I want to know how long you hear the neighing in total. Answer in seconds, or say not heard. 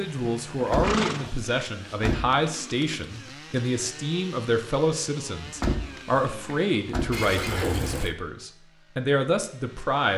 2 s.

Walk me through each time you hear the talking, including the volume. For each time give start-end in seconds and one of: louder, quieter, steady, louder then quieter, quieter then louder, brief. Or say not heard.
0.0-10.1 steady.